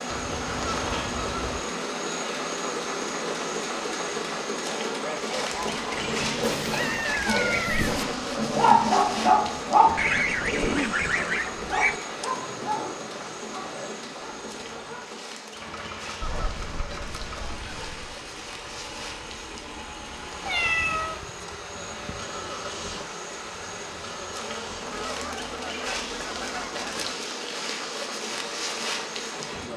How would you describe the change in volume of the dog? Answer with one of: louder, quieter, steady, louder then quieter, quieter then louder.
louder then quieter.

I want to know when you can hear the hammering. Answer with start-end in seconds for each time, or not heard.
not heard.